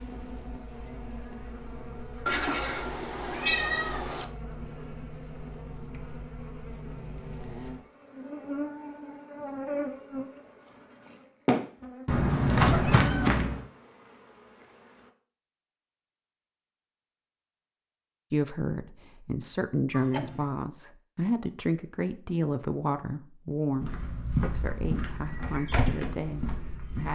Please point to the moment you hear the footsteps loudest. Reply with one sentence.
The volume of the footsteps peaks at 13 seconds.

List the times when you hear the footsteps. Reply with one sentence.
You can hear the footsteps from 11.4 to 13.6 s and from 23.7 to 27.1 s.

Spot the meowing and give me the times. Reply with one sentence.
The meowing can be heard from 2.2 to 4.2 s, from 12.4 to 13.4 s and from 19.9 to 20.5 s.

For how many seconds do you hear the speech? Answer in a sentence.
You can hear the speech for 9 seconds altogether.